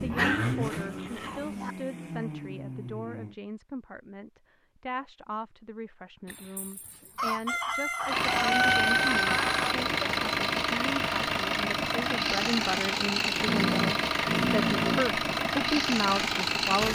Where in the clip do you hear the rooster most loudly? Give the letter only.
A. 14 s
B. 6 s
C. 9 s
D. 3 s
C.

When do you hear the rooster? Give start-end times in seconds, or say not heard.
6.2-9.8.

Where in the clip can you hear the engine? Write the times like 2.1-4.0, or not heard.
0.0-3.4, 8.1-16.8.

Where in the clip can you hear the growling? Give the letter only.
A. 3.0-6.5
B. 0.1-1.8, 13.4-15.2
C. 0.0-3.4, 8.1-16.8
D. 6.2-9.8
B.